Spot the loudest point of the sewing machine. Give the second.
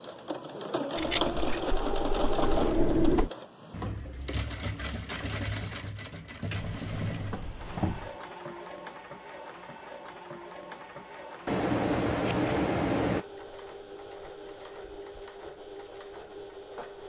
2 s.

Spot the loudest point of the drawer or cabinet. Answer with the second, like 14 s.
3 s.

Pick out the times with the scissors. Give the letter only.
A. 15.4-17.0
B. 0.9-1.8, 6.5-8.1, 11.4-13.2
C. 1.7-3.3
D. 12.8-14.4
B.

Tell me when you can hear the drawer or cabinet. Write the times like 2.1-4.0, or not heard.
1.7-3.3.